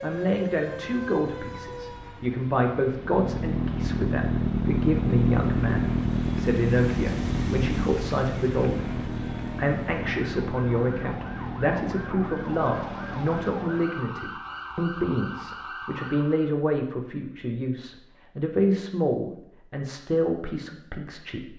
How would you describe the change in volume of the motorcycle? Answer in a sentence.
The loudness of the motorcycle goes down.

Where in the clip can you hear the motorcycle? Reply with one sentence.
You can hear the motorcycle from 2.9 to 13.8 s.